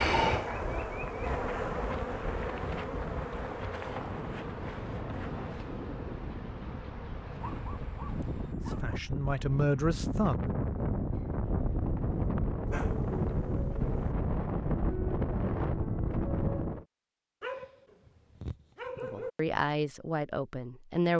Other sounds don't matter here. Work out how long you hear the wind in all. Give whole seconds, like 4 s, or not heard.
17 s.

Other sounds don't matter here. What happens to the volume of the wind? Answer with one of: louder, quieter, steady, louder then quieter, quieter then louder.
louder.